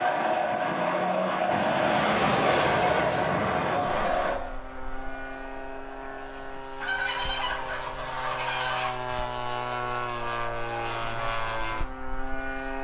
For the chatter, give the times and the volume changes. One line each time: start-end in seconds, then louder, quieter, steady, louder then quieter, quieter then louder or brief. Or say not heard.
0.0-6.7 quieter.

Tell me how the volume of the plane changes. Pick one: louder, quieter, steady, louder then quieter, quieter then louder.
quieter then louder.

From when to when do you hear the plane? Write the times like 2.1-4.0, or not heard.
1.4-12.7.